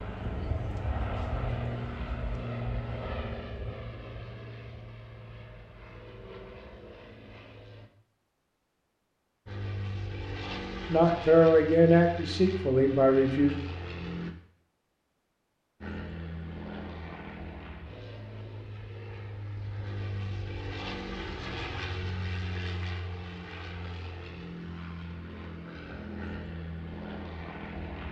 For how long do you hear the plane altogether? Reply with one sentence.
The plane can be heard for 25 seconds in total.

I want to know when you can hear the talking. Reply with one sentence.
The talking can be heard from 10.8 to 13.6 s.